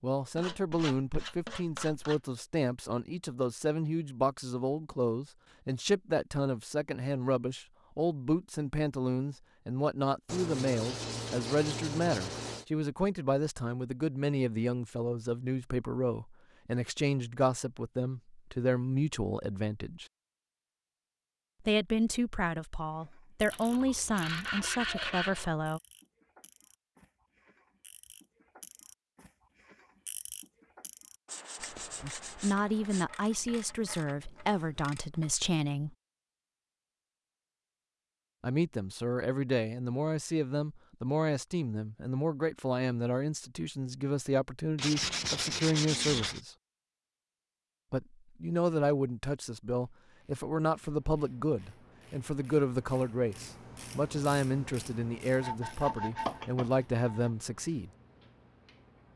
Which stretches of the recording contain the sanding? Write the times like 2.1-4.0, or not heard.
0.3-2.2, 10.2-12.7, 23.5-25.5, 31.2-33.0, 44.8-46.4, 55.4-57.3.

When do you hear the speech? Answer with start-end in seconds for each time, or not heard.
0.0-20.1, 21.6-25.8, 32.0-36.0, 38.4-46.5, 47.9-57.9.